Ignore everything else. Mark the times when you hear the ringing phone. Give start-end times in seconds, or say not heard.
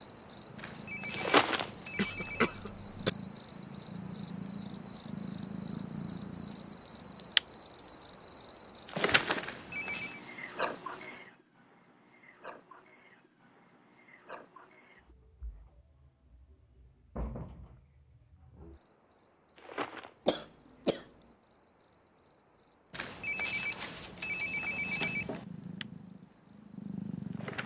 0.6-2.6, 9.4-10.2, 22.9-25.4.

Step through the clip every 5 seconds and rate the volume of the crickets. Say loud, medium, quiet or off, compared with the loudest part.
loud, loud, medium, quiet, quiet, quiet.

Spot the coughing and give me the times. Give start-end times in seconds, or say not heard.
1.9-3.1, 20.2-21.1.